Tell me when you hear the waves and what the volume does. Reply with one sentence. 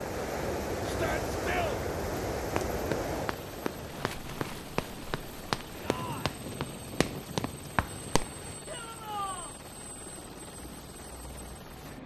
The waves can be heard from 0.0 to 8.6 s, getting quieter.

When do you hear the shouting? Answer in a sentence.
The shouting can be heard from 0.8 to 1.8 s, from 5.8 to 6.4 s and from 8.7 to 9.6 s.